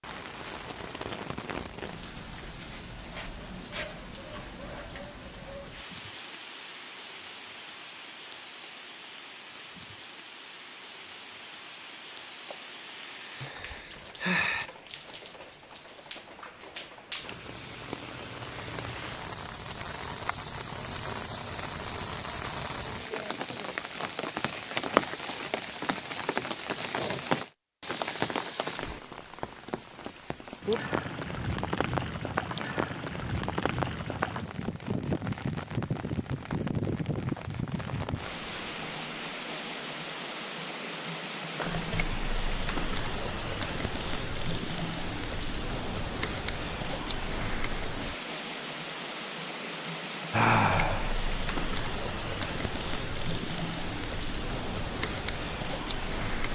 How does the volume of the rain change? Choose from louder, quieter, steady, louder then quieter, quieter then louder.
louder.